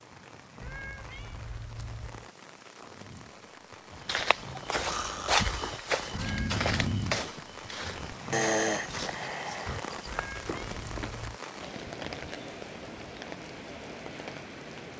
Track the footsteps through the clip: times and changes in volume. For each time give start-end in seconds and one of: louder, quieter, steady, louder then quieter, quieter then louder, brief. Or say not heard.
4.0-11.2 quieter.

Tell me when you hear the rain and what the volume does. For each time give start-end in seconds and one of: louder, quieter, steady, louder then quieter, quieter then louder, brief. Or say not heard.
0.0-14.9 louder.